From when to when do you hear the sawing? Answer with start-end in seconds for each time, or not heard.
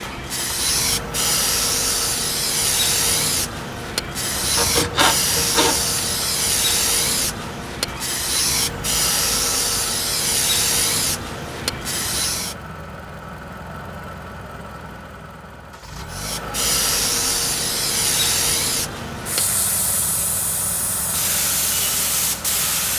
4.3-6.0.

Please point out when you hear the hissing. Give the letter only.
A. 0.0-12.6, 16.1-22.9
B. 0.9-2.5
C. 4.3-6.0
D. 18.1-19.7
A.